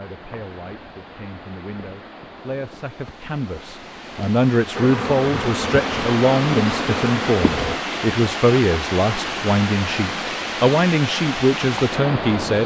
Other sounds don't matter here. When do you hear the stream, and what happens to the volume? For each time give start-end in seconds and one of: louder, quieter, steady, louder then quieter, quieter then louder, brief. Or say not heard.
0.0-12.6 louder.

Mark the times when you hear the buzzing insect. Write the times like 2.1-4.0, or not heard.
4.7-7.8.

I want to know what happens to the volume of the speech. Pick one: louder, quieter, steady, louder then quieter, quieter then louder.
louder.